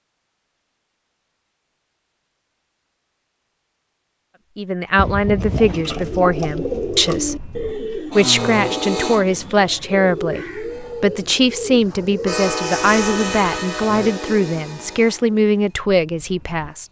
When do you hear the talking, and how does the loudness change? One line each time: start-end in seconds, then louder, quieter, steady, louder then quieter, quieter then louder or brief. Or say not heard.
4.5-16.8 steady.